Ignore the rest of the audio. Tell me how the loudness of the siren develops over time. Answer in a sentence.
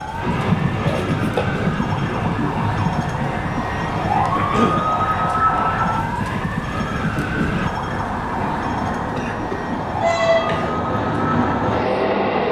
The loudness of the siren goes up, then down.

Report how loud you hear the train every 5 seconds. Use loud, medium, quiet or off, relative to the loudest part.
loud, medium, loud.